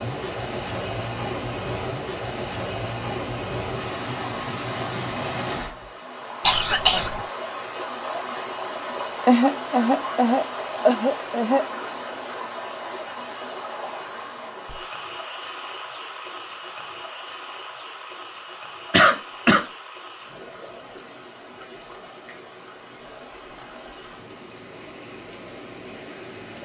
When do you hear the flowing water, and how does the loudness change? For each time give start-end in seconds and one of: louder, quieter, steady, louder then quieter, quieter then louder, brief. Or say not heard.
0.0-26.6 quieter.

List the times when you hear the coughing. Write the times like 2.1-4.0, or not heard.
6.4-7.2, 9.2-11.7, 18.9-19.6.